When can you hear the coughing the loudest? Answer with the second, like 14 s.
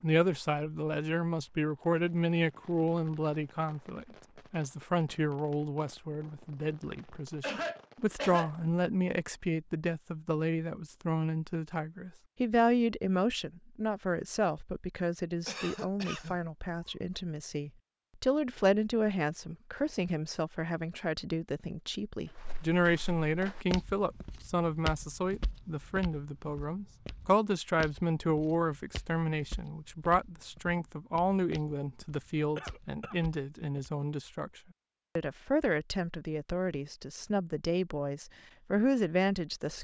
8 s.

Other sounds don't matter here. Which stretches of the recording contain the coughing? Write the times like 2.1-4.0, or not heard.
7.4-8.5, 15.4-16.4, 32.5-33.2.